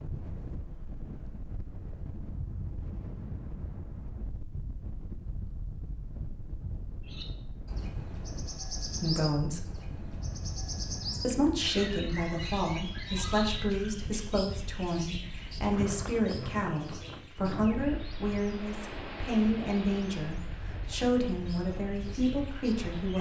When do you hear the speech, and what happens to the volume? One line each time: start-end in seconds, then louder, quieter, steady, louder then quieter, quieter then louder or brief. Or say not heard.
9.0-9.7 brief
11.2-23.1 steady.